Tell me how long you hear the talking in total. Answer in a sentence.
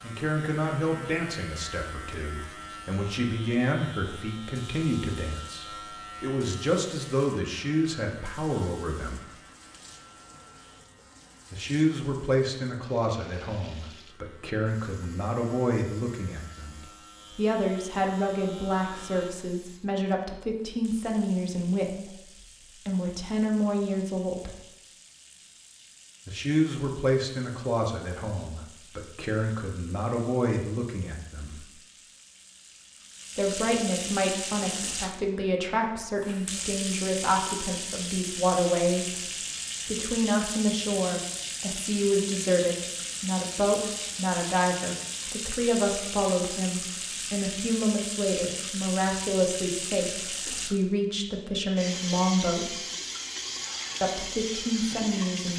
You can hear the talking for 48 seconds altogether.